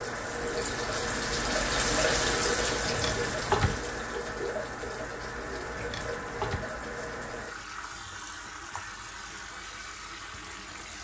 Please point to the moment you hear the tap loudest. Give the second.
2 s.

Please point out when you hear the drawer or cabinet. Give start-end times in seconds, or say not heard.
2.8-3.8, 5.7-6.7.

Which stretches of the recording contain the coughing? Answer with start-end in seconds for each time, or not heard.
not heard.